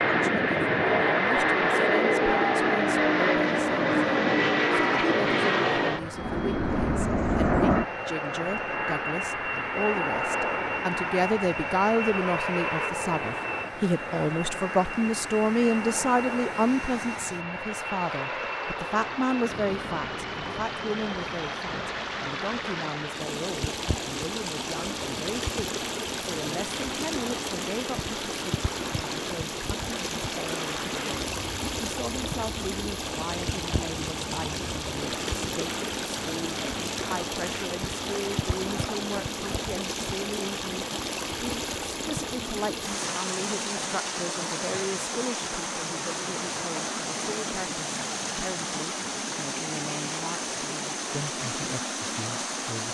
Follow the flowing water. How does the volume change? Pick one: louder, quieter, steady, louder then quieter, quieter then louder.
louder.